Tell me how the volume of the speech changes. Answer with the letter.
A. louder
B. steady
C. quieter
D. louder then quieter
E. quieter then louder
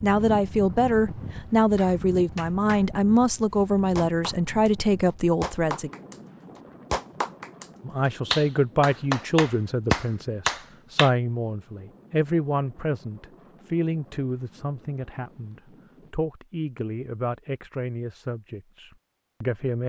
C.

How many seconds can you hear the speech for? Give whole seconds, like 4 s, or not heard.
18 s.